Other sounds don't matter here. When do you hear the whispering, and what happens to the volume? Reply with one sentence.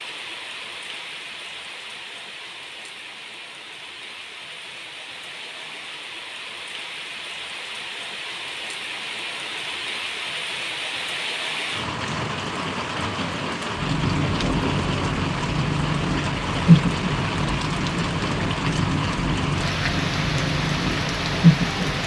The whispering can't be heard in this clip.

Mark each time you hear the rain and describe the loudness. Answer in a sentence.
You can hear the rain from 0.0 to 22.0 s, getting louder.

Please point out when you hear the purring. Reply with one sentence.
You can hear the purring from 13.8 to 22.0 s.